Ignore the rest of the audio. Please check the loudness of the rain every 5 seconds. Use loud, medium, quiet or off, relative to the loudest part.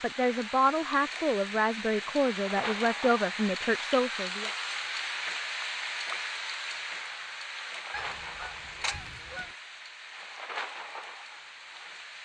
loud, loud, medium.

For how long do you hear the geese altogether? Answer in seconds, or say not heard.
2 s.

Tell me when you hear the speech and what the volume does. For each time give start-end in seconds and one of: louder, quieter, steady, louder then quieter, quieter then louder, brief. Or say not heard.
0.0-4.5 steady.